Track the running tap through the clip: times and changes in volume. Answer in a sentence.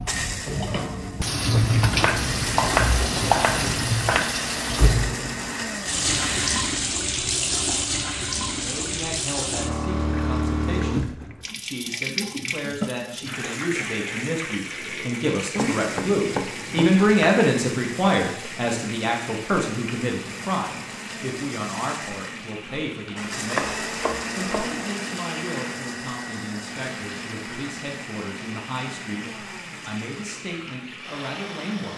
You can hear the running tap from 0.0 to 31.9 s, getting quieter.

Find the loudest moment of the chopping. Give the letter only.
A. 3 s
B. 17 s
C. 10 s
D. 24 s
A.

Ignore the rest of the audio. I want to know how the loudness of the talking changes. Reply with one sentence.
The loudness of the talking goes up, then down.